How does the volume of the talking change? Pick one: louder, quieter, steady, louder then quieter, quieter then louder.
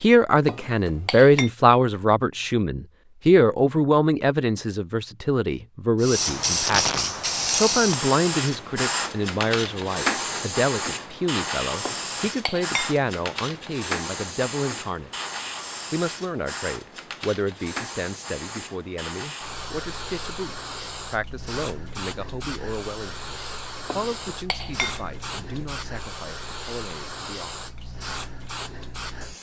quieter.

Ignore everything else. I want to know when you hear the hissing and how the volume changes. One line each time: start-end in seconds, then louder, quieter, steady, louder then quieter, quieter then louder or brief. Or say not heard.
6.0-29.3 quieter.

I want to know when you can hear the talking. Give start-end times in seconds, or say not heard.
0.0-15.1, 15.9-28.0.